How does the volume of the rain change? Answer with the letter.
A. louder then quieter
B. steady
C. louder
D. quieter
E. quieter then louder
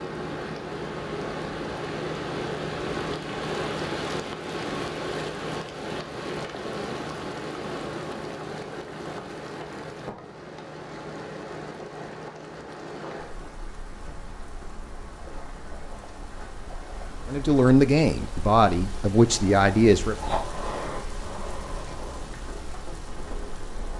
E.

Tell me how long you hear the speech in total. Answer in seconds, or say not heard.
3 s.